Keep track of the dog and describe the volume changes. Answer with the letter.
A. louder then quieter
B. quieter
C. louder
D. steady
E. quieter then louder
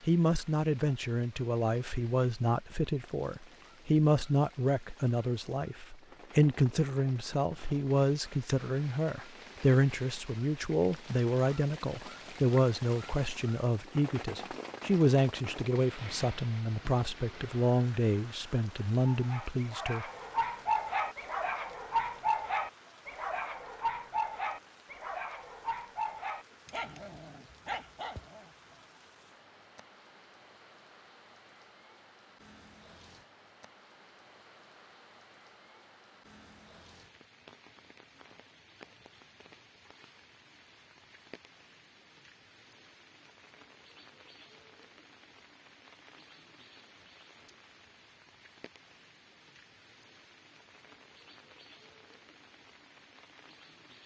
B.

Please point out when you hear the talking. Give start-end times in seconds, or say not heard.
0.1-20.1.